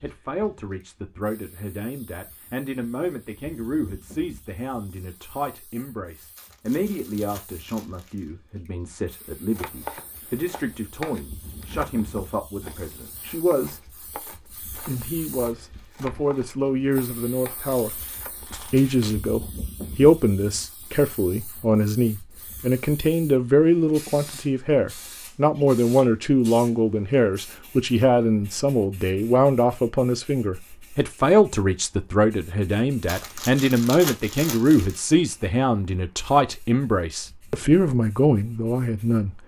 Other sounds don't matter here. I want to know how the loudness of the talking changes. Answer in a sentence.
The loudness of the talking goes up.